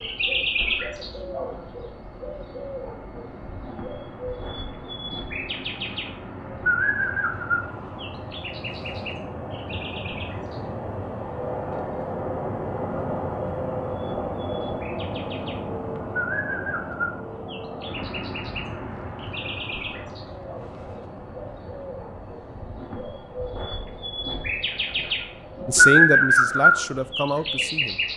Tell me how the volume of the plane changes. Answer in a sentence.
The volume of the plane goes up, then down.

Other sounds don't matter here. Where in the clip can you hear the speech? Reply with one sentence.
The speech can be heard from 25.6 to 28.0 s.